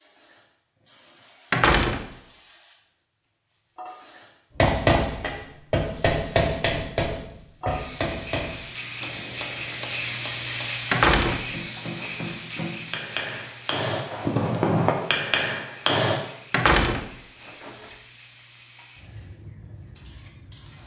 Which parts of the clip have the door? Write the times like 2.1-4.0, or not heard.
1.5-2.0, 10.9-12.3, 16.5-17.9.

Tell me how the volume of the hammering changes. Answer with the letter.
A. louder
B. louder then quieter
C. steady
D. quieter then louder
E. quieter
D.